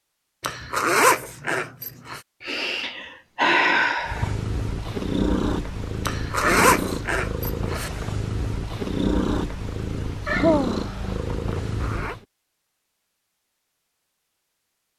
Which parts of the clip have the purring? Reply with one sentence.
The purring can be heard from 4.0 to 12.2 s.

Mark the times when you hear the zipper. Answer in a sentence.
You can hear the zipper from 0.4 to 2.2 s, from 6.0 to 7.9 s and from 11.5 to 12.2 s.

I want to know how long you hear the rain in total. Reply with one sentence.
You can't hear the rain here.